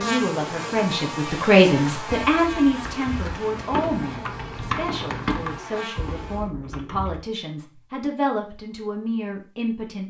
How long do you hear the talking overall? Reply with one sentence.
The talking can be heard for 10 seconds in total.